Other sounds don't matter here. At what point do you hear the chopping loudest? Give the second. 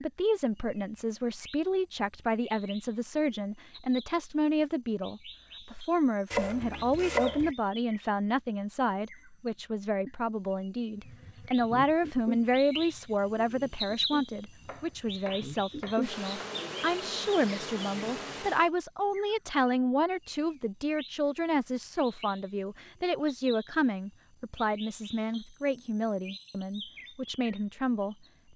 7 s.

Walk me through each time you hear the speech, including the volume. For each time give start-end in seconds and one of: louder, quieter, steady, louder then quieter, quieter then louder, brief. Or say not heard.
0.0-28.1 steady.